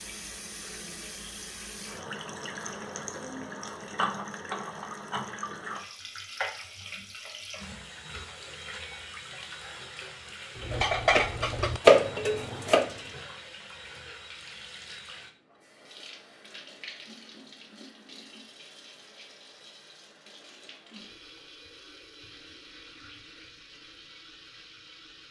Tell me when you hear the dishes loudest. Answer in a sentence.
The loudest moment of the dishes is at 12 seconds.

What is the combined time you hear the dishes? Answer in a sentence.
The dishes can be heard for 2 seconds in total.